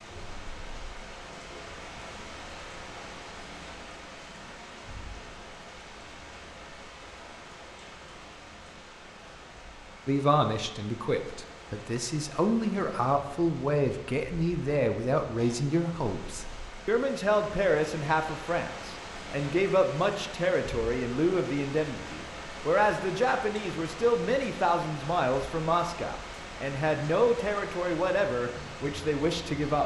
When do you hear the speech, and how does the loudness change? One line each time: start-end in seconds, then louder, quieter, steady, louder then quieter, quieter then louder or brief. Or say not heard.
10.1-29.8 steady.